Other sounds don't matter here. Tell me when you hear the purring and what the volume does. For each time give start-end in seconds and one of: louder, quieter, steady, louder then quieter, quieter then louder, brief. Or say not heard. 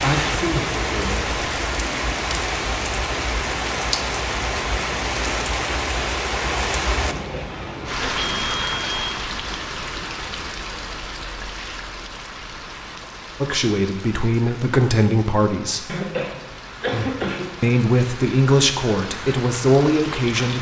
not heard.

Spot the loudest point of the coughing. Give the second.
17 s.